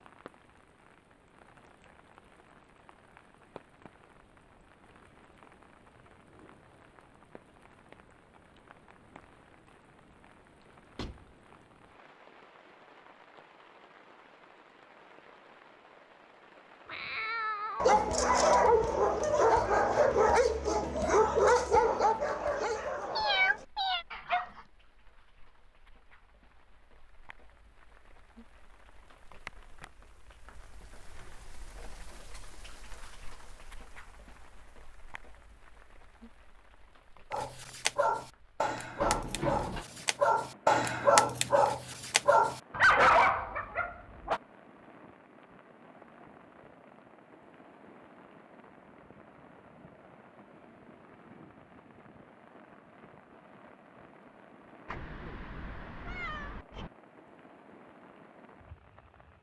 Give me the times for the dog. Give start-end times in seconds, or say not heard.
17.8-24.6, 37.3-44.4.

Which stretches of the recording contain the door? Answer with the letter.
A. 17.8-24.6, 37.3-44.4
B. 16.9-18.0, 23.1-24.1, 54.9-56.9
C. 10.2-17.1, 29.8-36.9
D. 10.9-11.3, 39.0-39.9
D.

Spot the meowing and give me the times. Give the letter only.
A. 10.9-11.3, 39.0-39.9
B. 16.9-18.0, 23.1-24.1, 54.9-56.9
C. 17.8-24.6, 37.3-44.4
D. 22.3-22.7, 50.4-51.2
B.